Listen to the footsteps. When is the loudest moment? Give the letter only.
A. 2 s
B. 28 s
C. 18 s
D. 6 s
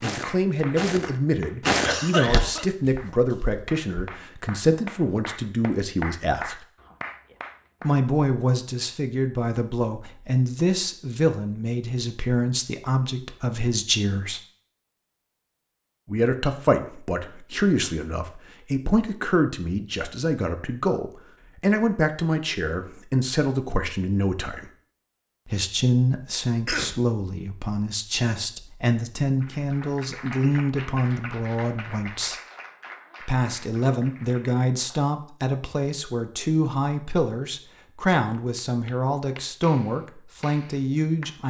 A.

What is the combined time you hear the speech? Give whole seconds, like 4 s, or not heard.
37 s.